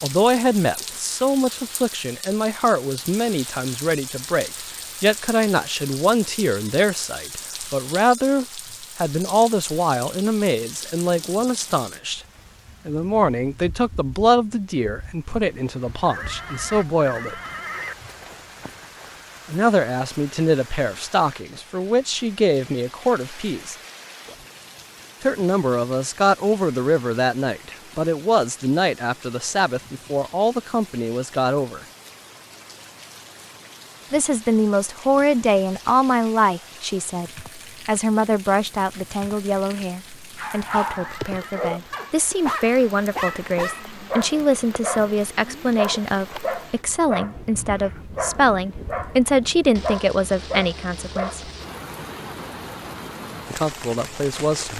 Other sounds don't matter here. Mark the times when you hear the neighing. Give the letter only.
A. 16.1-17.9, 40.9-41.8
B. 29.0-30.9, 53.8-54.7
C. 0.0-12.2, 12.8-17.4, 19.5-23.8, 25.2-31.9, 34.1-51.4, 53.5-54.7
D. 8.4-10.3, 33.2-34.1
A.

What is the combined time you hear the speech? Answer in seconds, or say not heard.
46 s.